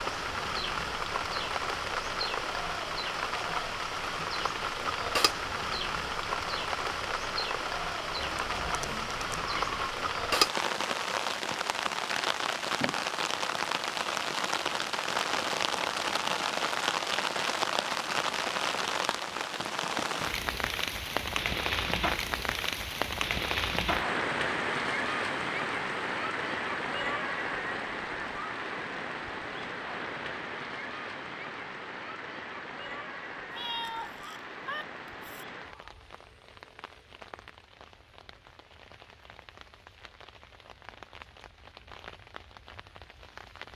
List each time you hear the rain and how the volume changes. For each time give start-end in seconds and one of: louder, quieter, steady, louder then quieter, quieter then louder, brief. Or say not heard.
0.0-43.7 quieter.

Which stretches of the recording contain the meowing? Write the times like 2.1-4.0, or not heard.
8.2-9.9, 33.5-35.5.